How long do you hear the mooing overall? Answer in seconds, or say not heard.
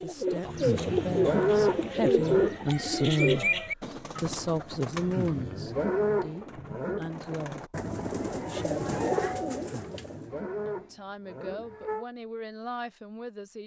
7 s.